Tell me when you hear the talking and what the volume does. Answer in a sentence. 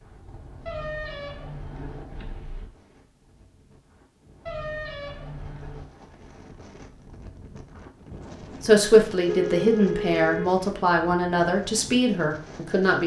You can hear the talking from 8.6 to 13.0 s, at a steady volume.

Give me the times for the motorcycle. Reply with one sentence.
The motorcycle can be heard from 0.0 to 2.5 s.